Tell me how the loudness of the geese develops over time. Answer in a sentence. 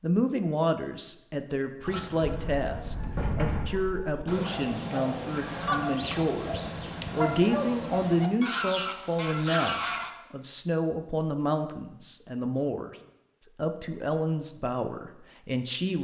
The loudness of the geese goes up.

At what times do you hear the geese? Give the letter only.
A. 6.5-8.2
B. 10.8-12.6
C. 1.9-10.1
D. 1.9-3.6
C.